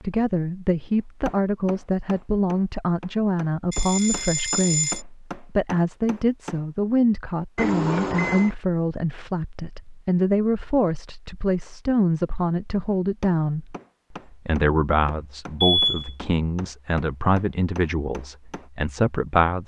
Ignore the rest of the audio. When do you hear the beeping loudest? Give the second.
16 s.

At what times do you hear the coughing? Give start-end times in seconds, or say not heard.
not heard.